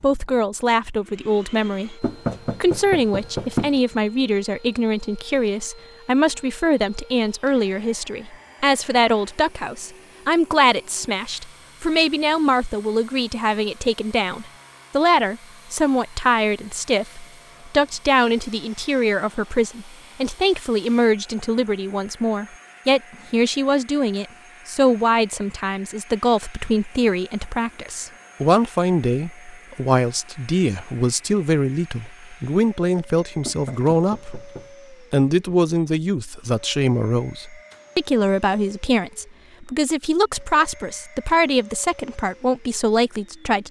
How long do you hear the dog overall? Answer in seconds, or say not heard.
not heard.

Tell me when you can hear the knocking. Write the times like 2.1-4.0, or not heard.
2.0-3.8, 33.5-34.7.